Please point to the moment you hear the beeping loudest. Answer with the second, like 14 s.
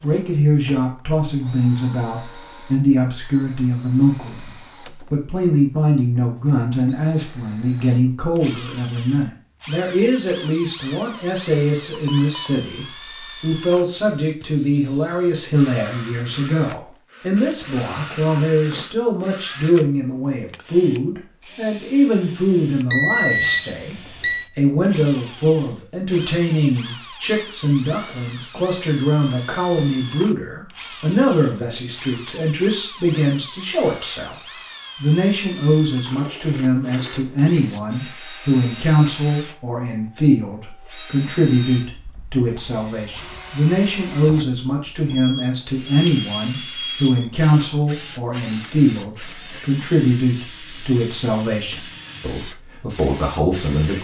23 s.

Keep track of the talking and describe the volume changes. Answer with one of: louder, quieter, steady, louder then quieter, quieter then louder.
steady.